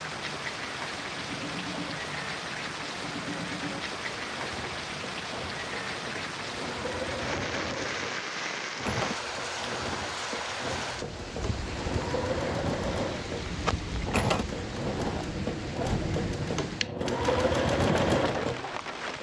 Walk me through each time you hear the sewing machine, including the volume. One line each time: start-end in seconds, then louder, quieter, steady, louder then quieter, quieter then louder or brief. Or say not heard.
0.0-19.1 louder.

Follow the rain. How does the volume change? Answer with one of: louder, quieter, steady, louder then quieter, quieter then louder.
steady.